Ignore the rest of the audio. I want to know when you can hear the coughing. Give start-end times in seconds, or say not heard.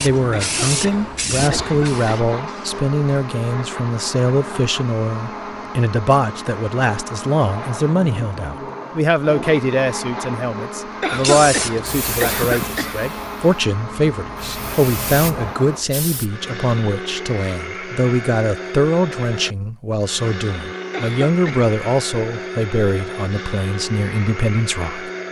0.3-2.0, 11.0-13.0, 20.9-21.7.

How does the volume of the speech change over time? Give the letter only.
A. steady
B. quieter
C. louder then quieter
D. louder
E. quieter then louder
A.